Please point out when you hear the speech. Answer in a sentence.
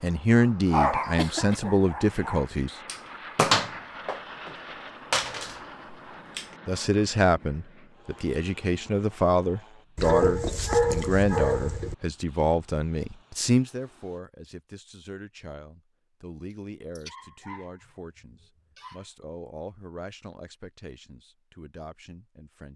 You can hear the speech from 0.0 to 2.8 s and from 6.7 to 22.7 s.